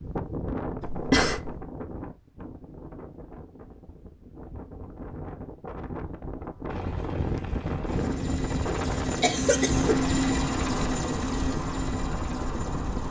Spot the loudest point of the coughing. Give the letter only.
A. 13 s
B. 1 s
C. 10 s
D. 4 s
B.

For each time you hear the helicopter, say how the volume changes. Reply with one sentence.
You can hear the helicopter from 6.7 to 13.0 s, getting louder then quieter.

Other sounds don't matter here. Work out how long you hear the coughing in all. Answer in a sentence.
You can hear the coughing for 2 seconds altogether.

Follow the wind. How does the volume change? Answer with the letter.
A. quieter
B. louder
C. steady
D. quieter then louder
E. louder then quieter
D.